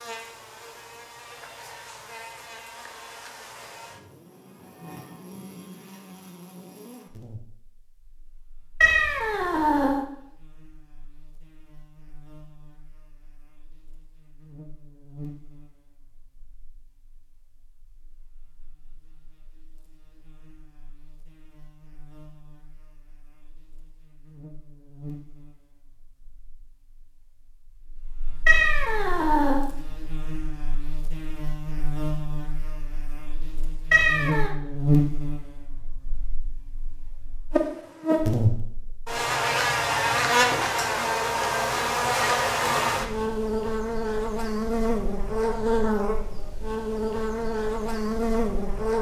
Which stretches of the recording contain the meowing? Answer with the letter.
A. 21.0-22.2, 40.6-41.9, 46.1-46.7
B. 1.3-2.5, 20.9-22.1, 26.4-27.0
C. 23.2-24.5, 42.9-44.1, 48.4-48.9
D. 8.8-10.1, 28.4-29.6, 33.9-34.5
D.